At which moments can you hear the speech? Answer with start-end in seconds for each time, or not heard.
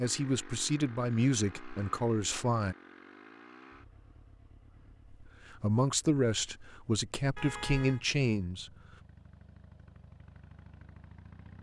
0.0-2.8, 5.1-8.7.